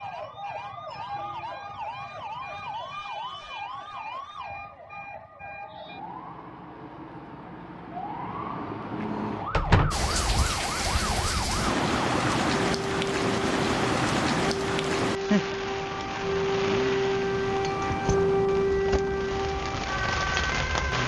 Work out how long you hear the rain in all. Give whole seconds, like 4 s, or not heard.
11 s.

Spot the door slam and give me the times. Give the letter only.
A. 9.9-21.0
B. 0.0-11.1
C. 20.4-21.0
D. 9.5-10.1
D.